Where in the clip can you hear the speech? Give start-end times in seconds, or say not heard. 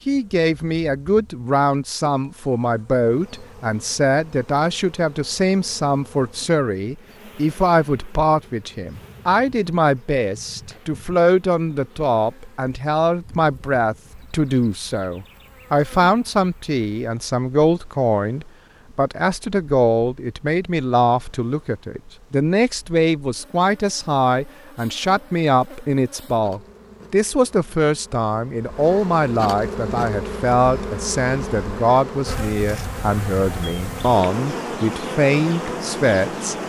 0.1-36.5.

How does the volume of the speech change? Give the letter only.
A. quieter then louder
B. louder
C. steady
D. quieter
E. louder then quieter
C.